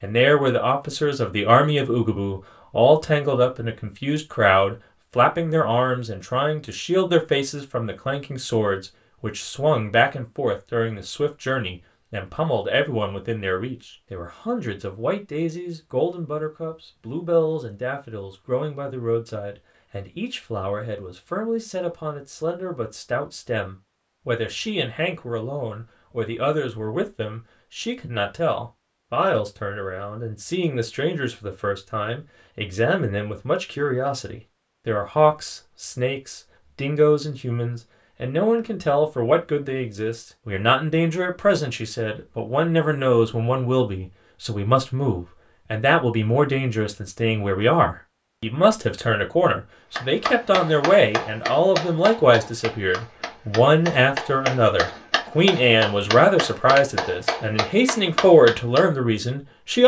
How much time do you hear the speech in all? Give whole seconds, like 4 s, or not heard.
60 s.